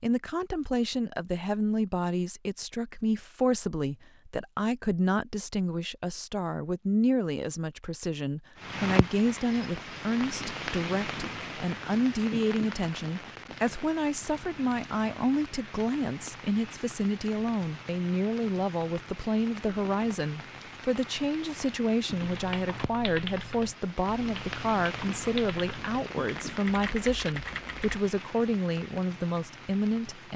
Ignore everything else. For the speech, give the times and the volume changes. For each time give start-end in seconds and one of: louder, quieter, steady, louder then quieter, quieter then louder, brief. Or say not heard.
0.0-30.3 steady.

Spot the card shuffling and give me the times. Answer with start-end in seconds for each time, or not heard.
not heard.